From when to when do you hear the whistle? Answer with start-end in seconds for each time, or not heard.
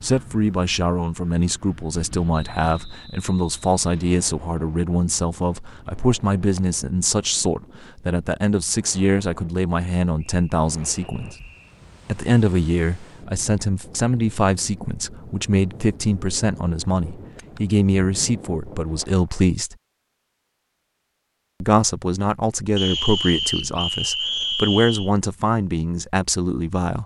2.3-4.2, 10.2-11.8, 22.8-25.1.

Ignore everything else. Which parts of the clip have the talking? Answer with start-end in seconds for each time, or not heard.
0.0-11.3, 12.1-19.8, 21.6-27.0.